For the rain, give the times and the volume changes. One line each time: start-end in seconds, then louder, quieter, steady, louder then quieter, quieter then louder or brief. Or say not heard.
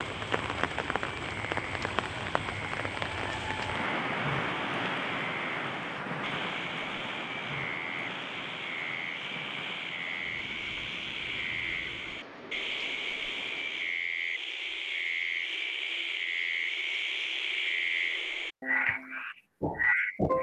0.0-14.1 quieter.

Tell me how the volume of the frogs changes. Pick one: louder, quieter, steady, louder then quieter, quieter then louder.
louder.